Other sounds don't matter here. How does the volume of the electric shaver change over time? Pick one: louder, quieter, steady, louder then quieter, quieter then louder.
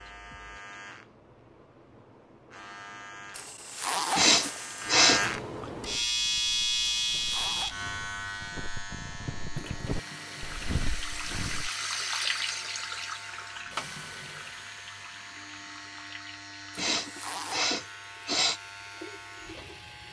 louder then quieter.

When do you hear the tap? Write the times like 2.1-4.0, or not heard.
9.5-20.0.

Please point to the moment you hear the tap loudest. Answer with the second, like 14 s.
12 s.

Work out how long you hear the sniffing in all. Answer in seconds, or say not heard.
3 s.